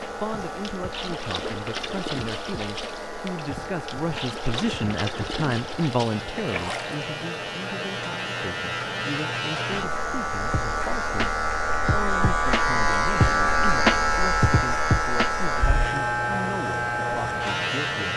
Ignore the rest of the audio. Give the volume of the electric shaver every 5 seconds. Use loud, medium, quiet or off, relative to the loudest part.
quiet, medium, loud, loud.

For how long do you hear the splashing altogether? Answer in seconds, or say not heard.
7 s.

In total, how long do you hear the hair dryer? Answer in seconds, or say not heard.
18 s.